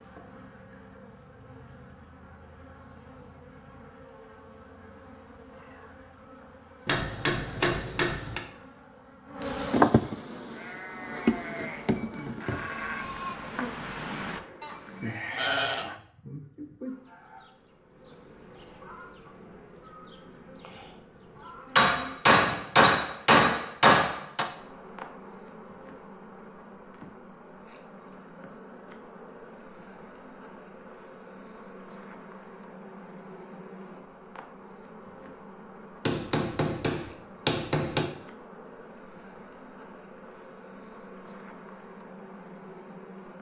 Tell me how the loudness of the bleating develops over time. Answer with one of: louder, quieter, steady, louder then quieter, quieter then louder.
louder.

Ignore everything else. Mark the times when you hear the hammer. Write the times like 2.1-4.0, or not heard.
6.8-8.4, 21.8-24.4, 36.0-38.0.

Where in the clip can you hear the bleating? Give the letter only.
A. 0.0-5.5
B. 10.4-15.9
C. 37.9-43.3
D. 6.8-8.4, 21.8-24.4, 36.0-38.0
B.